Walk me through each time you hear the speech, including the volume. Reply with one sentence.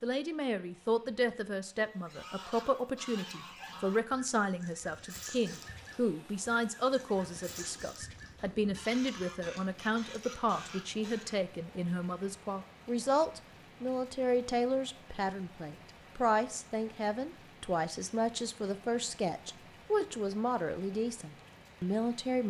You can hear the speech from 0.0 to 22.4 s, at a steady volume.